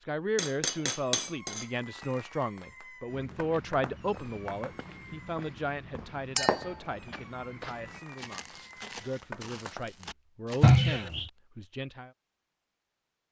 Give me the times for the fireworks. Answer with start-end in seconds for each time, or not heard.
0.8-9.8.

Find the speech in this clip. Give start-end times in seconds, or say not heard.
0.1-12.1.